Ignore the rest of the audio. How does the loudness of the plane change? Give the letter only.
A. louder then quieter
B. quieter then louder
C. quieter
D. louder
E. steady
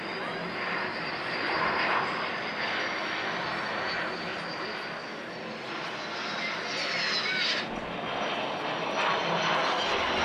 B.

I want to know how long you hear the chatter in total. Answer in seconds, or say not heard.
10 s.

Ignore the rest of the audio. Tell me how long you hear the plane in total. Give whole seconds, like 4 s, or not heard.
10 s.